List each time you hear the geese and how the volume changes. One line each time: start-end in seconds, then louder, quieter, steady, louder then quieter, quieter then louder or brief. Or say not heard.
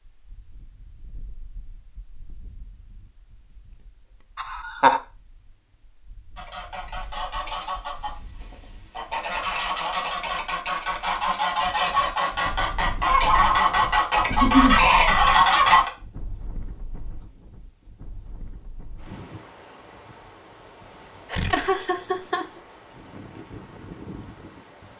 6.3-15.9 louder.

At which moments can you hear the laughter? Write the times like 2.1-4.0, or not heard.
4.3-5.0, 14.3-14.8, 21.3-22.4.